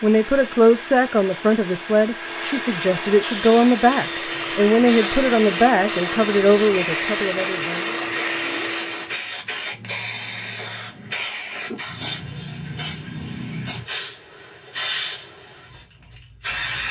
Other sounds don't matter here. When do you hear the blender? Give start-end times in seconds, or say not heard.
0.0-9.2.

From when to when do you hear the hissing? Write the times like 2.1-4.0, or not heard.
3.2-16.8.